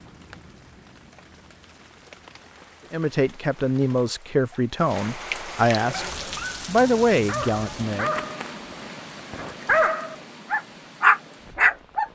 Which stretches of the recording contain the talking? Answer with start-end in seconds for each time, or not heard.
2.9-8.2.